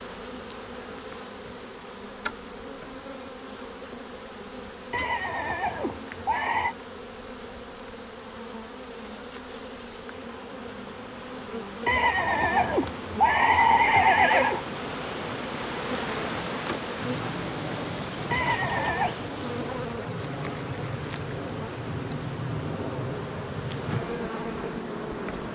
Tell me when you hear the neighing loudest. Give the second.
14 s.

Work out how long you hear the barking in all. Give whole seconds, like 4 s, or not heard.
not heard.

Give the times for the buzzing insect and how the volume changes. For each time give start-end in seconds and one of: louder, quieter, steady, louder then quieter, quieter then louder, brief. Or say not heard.
0.0-25.5 louder.